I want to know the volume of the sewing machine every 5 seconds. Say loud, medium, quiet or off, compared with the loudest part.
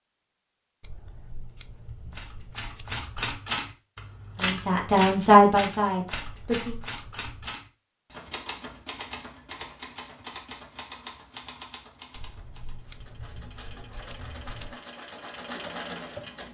off, off, medium, loud.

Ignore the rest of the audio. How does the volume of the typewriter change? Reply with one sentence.
The volume of the typewriter goes down.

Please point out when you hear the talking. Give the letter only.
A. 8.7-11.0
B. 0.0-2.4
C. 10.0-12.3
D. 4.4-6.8
D.